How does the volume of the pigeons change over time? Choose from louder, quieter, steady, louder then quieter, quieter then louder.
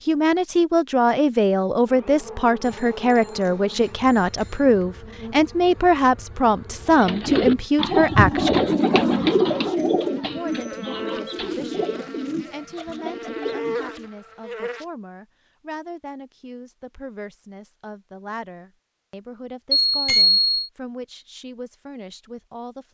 quieter.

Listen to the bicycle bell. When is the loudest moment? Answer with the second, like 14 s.
20 s.